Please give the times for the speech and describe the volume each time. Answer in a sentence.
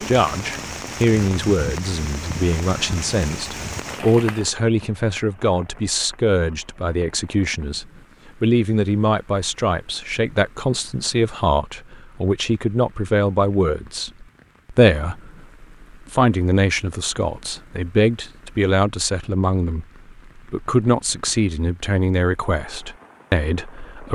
You can hear the speech from 0.0 to 24.1 s, at a steady volume.